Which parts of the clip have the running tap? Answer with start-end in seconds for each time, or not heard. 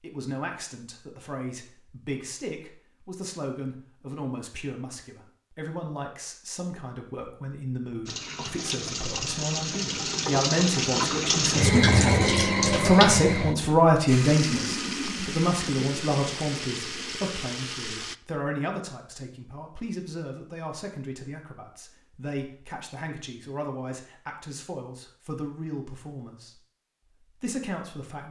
8.1-18.2.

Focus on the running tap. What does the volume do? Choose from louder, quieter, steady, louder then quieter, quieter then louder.
louder then quieter.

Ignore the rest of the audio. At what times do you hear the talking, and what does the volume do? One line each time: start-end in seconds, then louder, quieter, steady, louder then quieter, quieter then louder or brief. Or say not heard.
0.0-26.6 louder then quieter
27.2-28.2 brief.